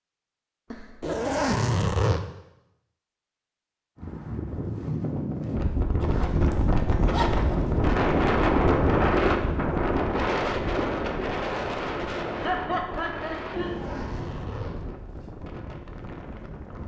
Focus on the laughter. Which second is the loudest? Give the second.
13 s.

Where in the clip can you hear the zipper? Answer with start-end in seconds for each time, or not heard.
1.0-2.2, 6.0-7.6, 13.5-14.8.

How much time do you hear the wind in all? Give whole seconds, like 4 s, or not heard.
13 s.